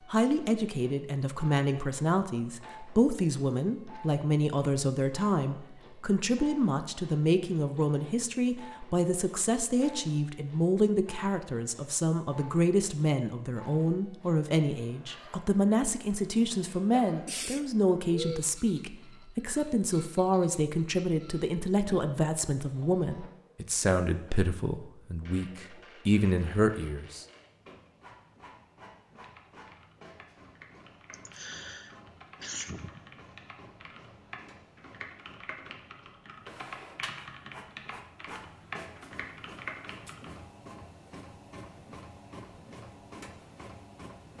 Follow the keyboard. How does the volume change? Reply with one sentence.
The volume of the keyboard goes up.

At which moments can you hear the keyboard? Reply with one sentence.
You can hear the keyboard from 29.1 to 40.3 s.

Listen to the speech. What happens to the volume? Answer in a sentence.
The loudness of the speech stays about the same.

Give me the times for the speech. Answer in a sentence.
You can hear the speech from 0.1 to 27.2 s.